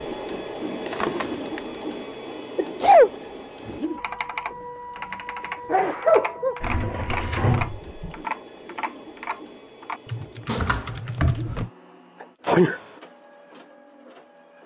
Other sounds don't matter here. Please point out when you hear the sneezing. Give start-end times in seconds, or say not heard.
2.5-3.1, 5.7-6.5, 12.4-12.8.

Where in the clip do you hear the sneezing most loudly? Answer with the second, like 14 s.
3 s.